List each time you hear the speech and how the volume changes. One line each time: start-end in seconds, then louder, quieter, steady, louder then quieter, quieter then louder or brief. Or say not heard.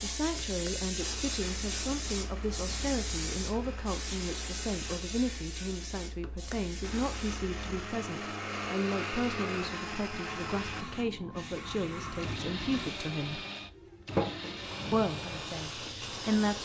0.0-13.4 steady
14.9-16.6 brief.